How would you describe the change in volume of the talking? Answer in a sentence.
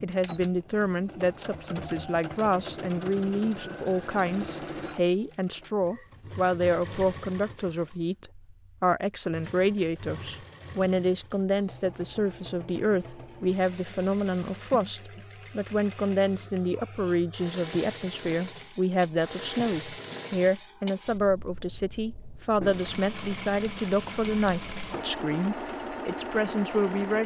The loudness of the talking stays about the same.